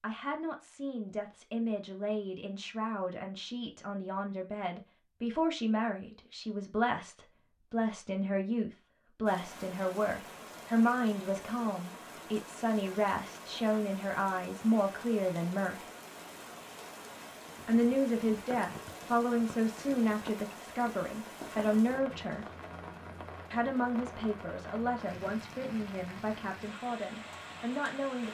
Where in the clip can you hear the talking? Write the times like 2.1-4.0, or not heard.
0.0-15.8, 17.6-22.4, 23.5-28.2.